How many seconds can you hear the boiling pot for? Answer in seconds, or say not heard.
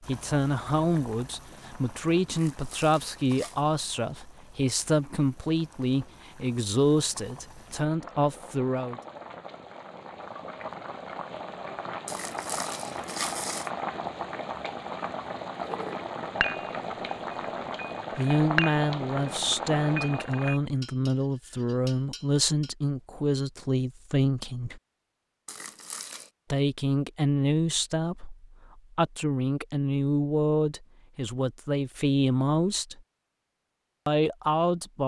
21 s.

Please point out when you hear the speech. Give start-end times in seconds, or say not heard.
0.0-9.0, 18.1-24.8, 26.5-33.0, 34.0-35.0.